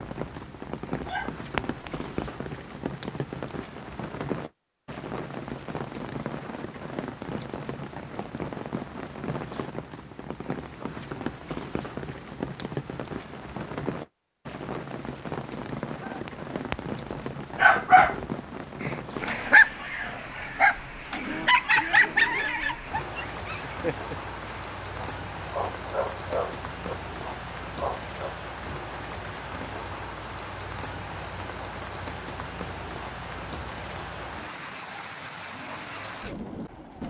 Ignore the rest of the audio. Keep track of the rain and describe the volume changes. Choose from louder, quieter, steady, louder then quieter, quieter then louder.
steady.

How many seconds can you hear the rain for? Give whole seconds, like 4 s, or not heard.
37 s.